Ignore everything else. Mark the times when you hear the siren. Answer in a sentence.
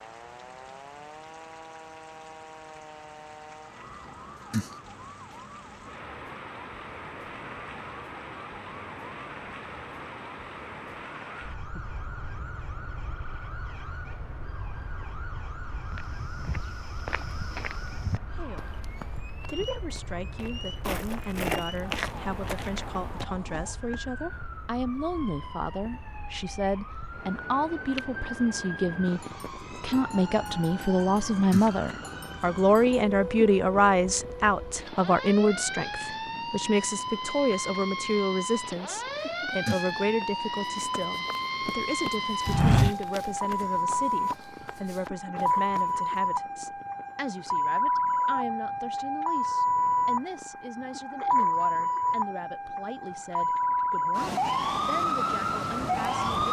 You can hear the siren from 0.0 to 56.4 s.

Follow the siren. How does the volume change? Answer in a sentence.
The loudness of the siren goes up.